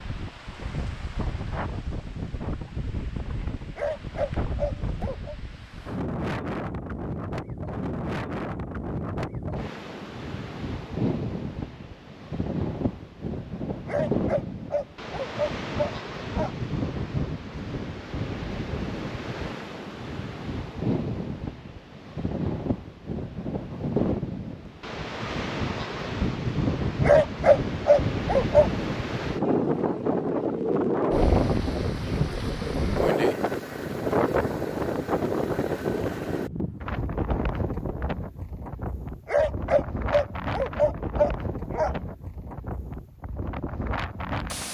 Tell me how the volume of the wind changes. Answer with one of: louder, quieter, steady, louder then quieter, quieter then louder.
louder then quieter.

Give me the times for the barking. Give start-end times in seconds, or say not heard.
3.8-5.3, 13.8-16.5, 27.0-28.7, 39.2-42.0.